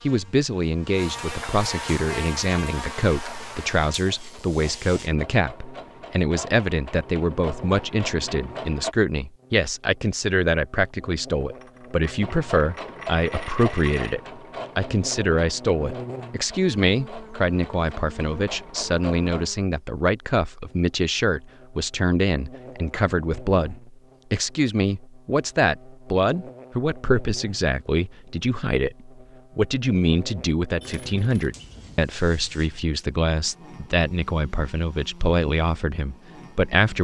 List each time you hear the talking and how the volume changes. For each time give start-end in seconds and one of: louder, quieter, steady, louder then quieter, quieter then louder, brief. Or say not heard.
0.0-36.9 steady.